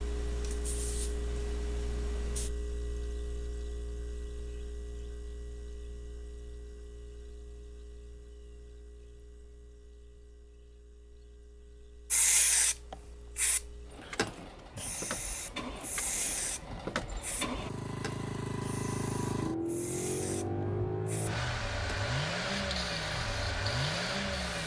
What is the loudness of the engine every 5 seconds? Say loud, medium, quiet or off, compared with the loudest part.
medium, quiet, quiet, loud, loud.